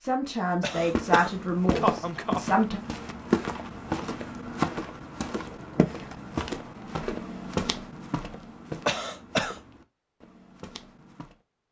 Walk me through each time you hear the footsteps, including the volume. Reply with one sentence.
The footsteps can be heard from 0.7 to 11.3 s, getting quieter.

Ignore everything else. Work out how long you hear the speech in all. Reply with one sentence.
The speech can be heard for 3 seconds in total.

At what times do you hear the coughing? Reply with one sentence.
You can hear the coughing from 0.6 to 2.5 s and from 8.8 to 9.6 s.